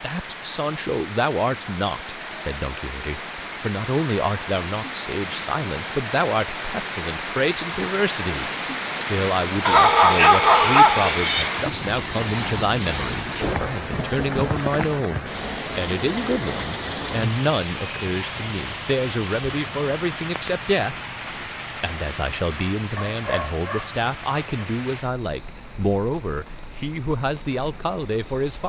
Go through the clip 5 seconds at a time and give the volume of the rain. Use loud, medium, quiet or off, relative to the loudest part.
medium, loud, loud, loud, medium, quiet.